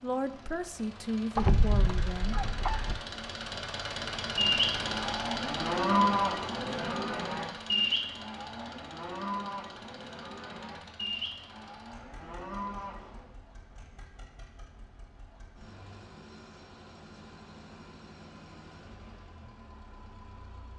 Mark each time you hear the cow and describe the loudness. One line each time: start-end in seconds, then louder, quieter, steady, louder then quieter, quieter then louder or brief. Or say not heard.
4.3-13.3 quieter.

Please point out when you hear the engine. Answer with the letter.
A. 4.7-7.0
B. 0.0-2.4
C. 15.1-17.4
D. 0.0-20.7
D.